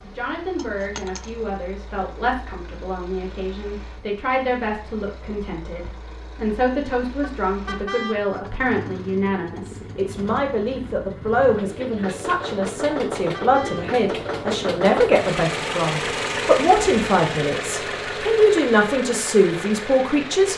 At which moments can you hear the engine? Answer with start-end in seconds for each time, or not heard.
0.0-20.5.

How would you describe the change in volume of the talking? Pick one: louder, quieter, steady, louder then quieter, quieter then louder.
louder.